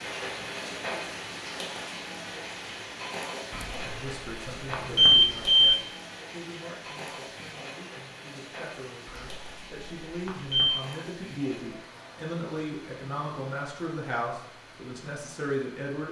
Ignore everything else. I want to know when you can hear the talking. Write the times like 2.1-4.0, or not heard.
3.8-16.0.